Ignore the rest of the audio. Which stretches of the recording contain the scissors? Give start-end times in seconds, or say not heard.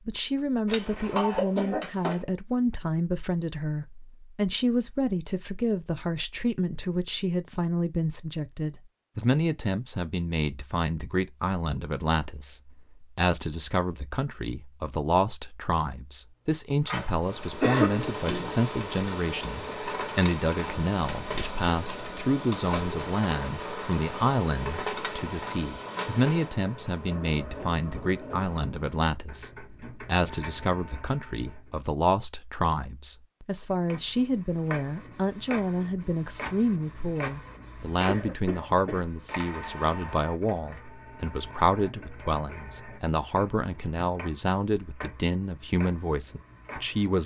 not heard.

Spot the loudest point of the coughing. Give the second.
18 s.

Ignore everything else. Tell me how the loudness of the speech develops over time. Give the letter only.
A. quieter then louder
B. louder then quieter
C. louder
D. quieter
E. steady
E.